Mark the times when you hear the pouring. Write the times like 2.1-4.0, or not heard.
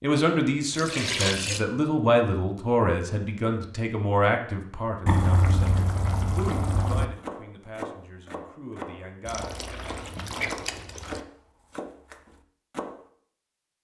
0.7-1.6, 5.0-7.0, 9.2-11.2.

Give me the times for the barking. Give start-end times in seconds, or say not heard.
not heard.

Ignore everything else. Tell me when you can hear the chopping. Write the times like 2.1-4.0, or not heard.
6.5-13.0.